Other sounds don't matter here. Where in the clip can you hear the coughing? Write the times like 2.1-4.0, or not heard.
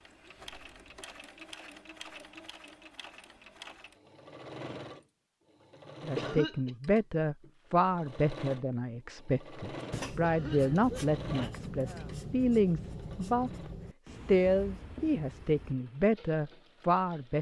6.2-6.7, 10.2-12.2.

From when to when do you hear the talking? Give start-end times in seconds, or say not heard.
6.0-17.3.